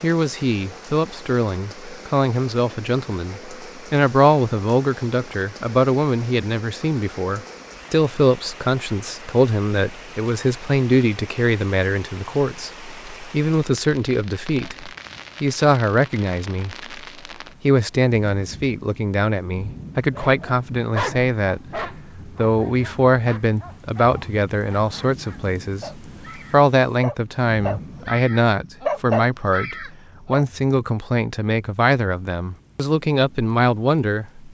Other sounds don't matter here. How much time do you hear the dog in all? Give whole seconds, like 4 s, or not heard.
10 s.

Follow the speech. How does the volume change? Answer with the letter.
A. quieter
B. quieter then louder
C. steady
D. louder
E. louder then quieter
C.